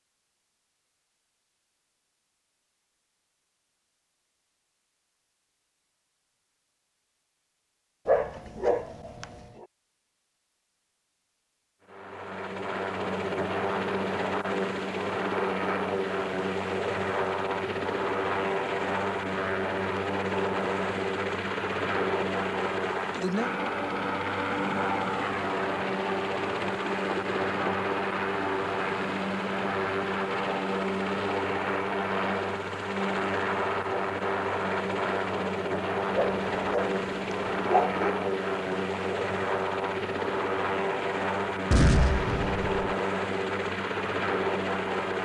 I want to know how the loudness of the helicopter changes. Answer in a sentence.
The volume of the helicopter stays about the same.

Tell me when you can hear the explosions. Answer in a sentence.
The explosions can be heard from 41.7 to 42.9 s.